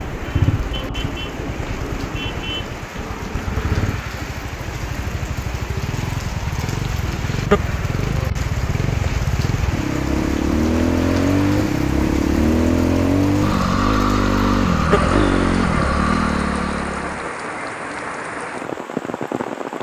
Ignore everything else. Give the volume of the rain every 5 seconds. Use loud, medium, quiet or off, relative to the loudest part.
medium, loud, loud, loud.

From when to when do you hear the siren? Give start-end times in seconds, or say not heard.
not heard.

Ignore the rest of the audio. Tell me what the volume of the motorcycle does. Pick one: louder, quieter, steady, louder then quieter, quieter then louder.
louder.